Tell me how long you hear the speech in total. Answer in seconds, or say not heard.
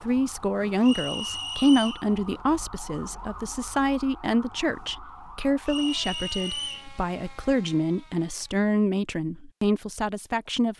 11 s.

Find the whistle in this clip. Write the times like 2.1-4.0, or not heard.
0.8-2.0, 5.7-6.9.